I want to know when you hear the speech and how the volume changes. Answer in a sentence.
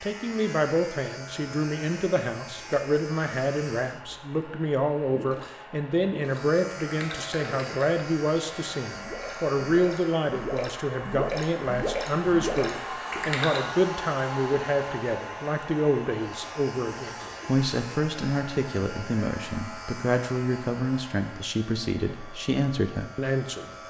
You can hear the speech from 0.0 to 23.7 s, at a steady volume.